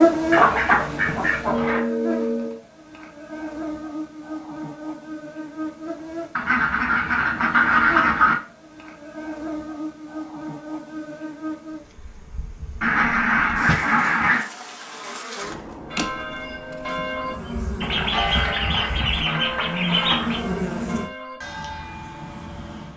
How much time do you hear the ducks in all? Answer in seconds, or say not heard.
8 s.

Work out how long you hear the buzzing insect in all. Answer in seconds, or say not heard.
21 s.